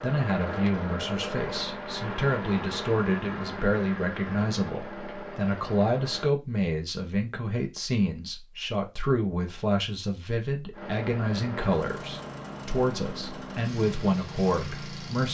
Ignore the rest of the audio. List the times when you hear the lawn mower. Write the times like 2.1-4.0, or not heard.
0.0-6.3, 10.7-15.3.